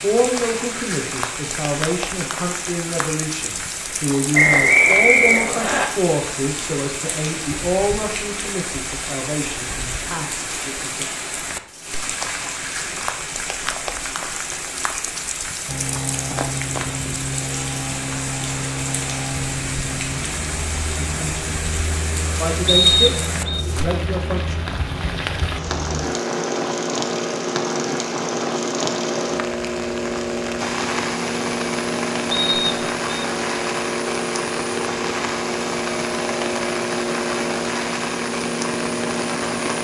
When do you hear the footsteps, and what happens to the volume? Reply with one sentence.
The footsteps can't be heard in this clip.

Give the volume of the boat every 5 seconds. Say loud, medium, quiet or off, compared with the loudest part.
off, off, off, loud, medium, loud, loud, loud.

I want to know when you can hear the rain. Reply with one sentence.
The rain can be heard from 0.0 to 39.7 s.